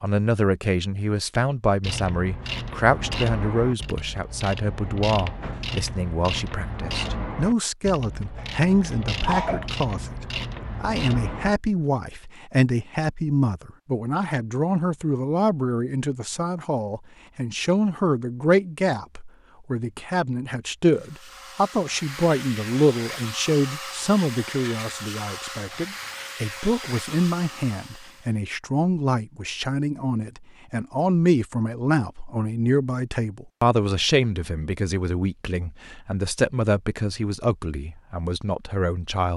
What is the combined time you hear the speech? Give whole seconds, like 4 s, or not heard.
39 s.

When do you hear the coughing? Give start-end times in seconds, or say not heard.
8.3-9.7.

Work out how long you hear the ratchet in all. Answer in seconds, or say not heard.
10 s.